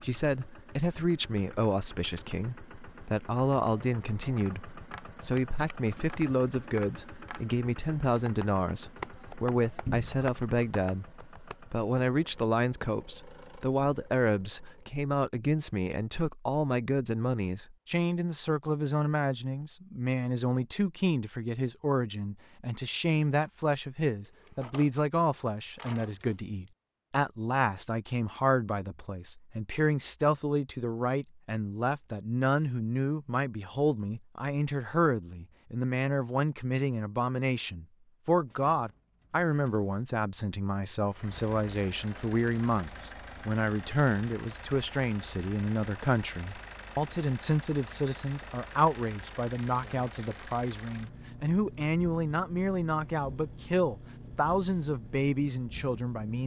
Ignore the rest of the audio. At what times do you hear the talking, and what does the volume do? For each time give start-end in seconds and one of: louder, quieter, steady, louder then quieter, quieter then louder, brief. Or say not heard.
0.0-56.4 steady.